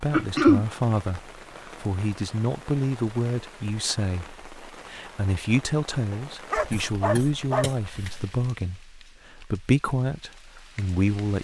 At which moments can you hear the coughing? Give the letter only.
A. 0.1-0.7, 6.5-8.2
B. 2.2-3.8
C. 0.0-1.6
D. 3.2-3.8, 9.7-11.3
A.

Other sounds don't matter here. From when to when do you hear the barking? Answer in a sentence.
You can hear the barking from 6.1 to 7.7 s.